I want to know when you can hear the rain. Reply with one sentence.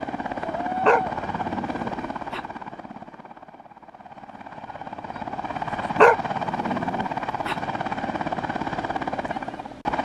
You can't hear the rain here.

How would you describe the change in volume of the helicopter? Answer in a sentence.
The loudness of the helicopter goes down, then up.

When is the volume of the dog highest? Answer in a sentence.
The loudest moment of the dog is at 6 seconds.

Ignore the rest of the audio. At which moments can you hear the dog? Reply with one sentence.
You can hear the dog from 0.8 to 2.4 s and from 6.0 to 7.5 s.